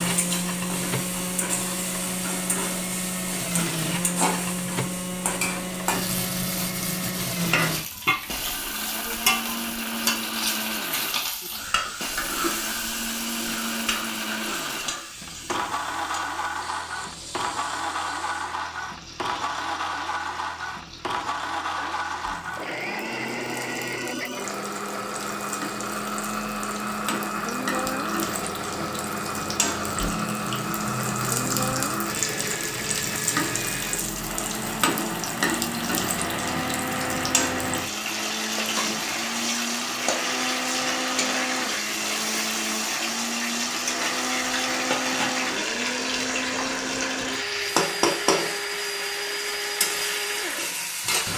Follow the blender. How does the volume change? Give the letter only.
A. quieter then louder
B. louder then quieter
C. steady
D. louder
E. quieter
C.